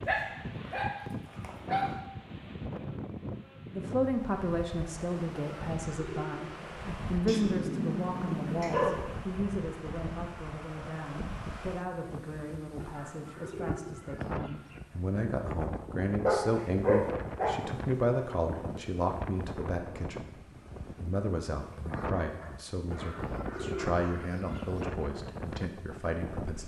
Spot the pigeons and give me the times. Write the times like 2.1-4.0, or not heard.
5.3-6.7, 12.8-14.8, 22.9-24.9.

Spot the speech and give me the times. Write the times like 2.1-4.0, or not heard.
3.7-26.6.